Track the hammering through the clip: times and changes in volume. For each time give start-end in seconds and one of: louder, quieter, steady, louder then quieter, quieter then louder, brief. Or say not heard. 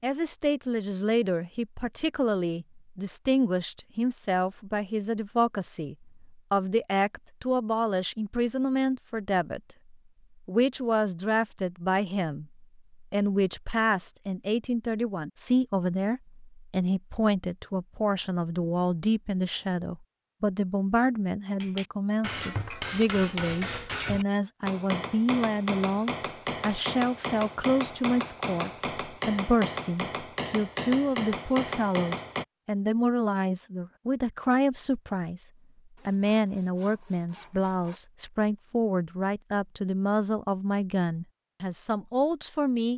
21.6-32.5 steady.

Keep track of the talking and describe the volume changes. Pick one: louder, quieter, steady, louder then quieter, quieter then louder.
steady.